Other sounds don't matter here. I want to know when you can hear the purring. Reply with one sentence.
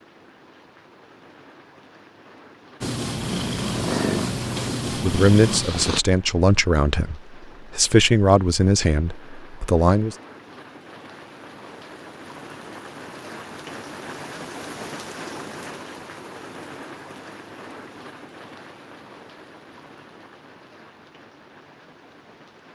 You can hear the purring from 2.8 to 6.0 s.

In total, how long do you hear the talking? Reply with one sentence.
You can hear the talking for 5 seconds altogether.